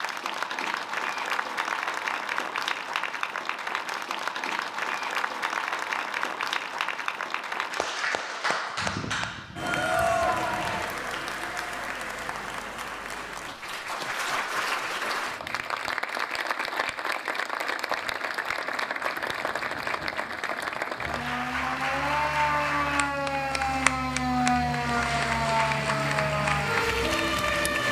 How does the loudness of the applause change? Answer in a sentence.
The volume of the applause stays about the same.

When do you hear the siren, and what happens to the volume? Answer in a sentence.
You can hear the siren briefly from 8.8 to 10.8 s; and from 21.0 to 27.8 s, at a steady volume.